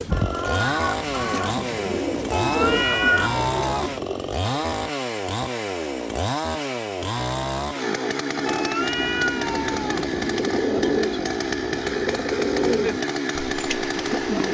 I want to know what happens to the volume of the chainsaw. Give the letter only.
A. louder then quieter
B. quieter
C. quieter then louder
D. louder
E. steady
E.